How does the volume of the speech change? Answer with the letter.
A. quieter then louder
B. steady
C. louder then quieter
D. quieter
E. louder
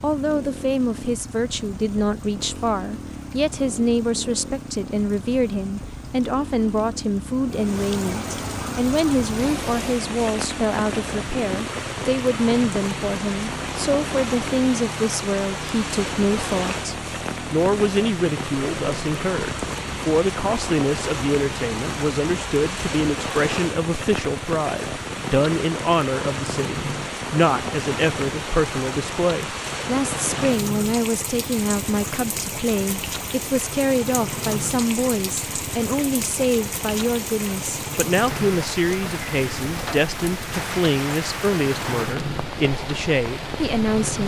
B.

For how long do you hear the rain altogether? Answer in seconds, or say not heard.
44 s.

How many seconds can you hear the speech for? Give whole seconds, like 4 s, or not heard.
44 s.